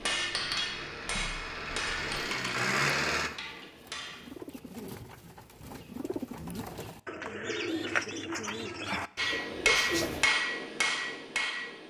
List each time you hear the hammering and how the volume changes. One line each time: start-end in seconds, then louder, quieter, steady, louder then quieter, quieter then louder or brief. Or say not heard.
0.0-4.3 quieter
9.2-11.8 brief.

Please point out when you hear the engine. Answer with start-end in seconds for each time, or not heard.
0.0-3.3.